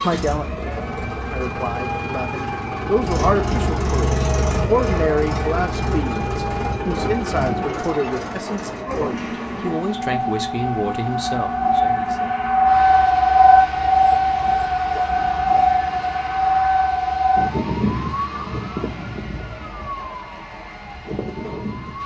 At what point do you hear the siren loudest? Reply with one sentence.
The volume of the siren peaks at 13 seconds.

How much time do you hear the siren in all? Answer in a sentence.
The siren can be heard for 22 seconds in total.